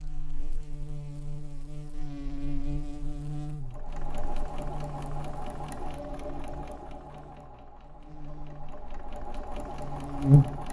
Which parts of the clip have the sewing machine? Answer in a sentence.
The sewing machine can be heard from 3.6 to 10.6 s.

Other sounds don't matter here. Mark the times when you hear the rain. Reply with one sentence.
You can't hear the rain here.